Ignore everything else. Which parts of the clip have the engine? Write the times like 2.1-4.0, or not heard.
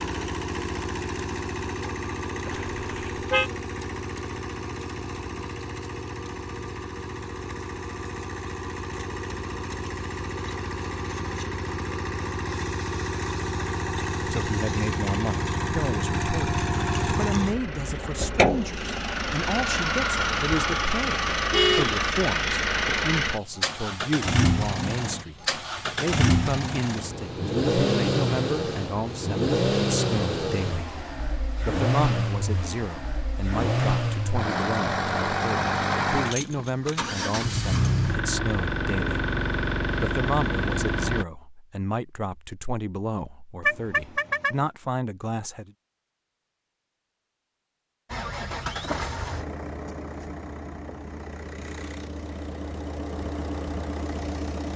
0.0-41.2, 48.1-54.7.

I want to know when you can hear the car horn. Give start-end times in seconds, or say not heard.
2.5-3.5, 21.5-22.0, 43.6-44.5.